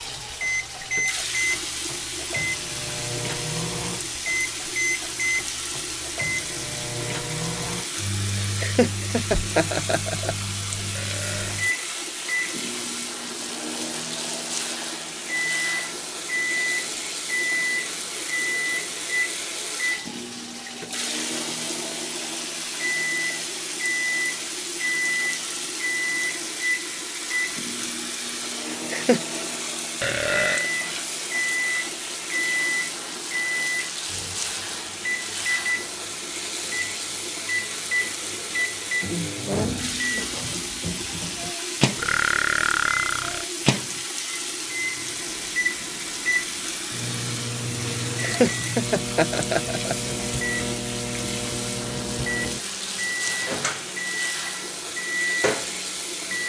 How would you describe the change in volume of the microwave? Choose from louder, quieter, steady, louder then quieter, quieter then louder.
steady.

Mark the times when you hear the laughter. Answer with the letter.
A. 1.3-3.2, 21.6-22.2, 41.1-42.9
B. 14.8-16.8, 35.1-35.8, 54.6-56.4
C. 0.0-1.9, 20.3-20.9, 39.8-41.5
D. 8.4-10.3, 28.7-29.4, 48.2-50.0
D.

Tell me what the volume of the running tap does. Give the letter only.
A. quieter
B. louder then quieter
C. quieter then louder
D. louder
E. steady
E.